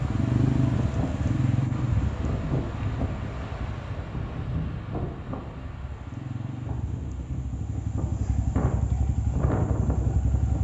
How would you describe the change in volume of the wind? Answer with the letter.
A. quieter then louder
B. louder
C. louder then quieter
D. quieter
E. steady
A.